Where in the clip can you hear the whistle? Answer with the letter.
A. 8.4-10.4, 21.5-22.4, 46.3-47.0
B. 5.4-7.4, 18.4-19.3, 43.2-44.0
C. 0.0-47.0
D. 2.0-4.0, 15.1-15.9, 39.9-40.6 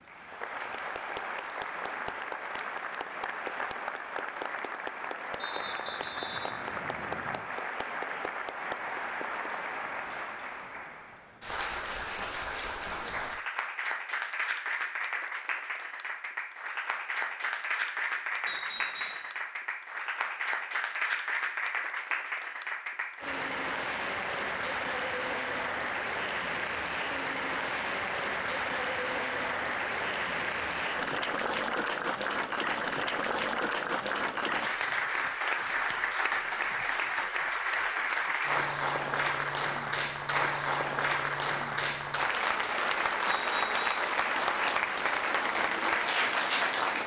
B.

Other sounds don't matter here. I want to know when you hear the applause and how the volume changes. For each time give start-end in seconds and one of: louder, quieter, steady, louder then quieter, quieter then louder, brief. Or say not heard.
0.0-47.0 louder.